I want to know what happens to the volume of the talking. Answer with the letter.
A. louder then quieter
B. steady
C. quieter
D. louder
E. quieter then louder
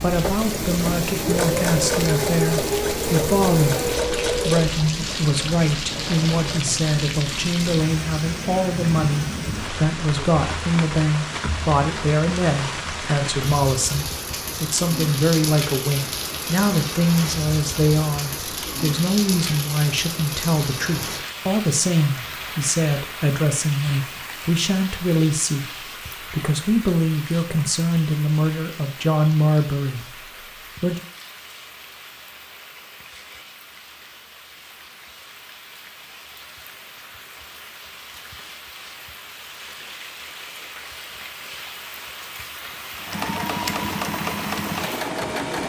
B.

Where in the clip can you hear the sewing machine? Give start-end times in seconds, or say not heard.
0.1-6.8, 43.0-45.6.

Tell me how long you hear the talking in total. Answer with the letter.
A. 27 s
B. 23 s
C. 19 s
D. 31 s
D.